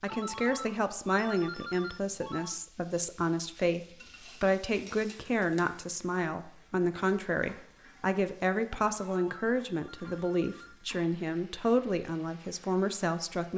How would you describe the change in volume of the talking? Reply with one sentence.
The volume of the talking stays about the same.